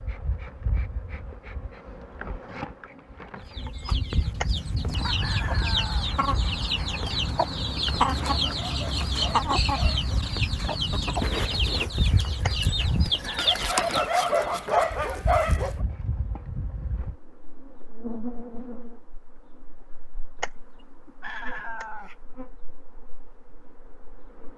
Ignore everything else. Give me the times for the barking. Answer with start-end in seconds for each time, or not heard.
8.1-10.2, 13.3-15.8.